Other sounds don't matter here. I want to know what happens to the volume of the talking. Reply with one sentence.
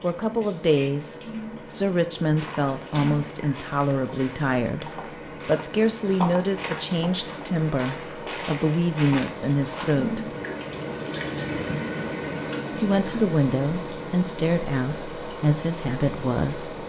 The loudness of the talking stays about the same.